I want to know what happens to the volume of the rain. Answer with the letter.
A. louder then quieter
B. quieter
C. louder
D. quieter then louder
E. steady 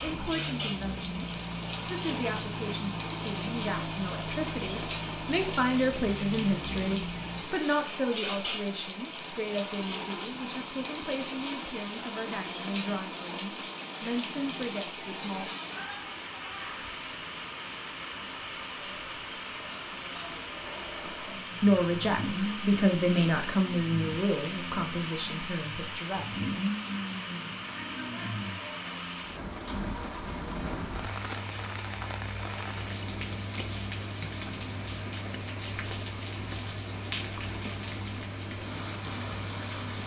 E.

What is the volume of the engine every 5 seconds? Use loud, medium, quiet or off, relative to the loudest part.
loud, loud, off, off, loud, loud, medium, medium.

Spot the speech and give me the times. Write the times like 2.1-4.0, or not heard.
0.0-15.6, 21.1-26.4.